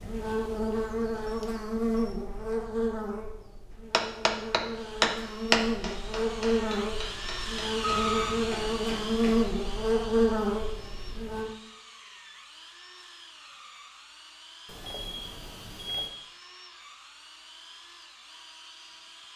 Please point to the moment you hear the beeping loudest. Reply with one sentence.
The volume of the beeping peaks at 8 seconds.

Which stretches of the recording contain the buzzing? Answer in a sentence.
You can hear the buzzing from 0.0 to 11.5 s.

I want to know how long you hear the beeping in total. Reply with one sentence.
The beeping can be heard for 3 seconds in total.